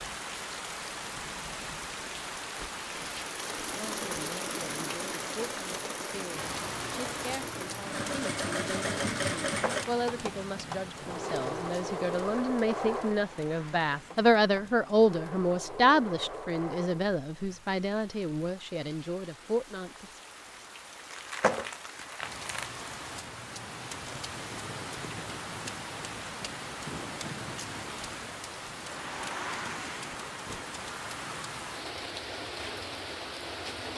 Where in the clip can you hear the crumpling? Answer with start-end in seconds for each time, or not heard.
9.4-9.9, 21.1-22.7.